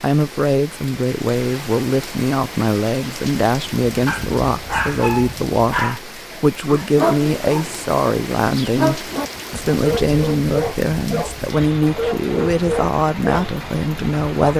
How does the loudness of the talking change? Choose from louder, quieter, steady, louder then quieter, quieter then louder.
steady.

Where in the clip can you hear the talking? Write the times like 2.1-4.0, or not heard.
0.0-14.5.